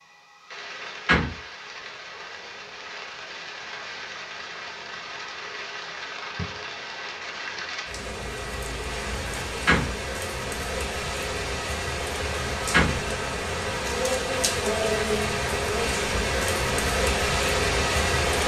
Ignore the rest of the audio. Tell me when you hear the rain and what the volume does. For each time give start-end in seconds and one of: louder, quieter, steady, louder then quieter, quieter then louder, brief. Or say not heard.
0.0-18.4 louder.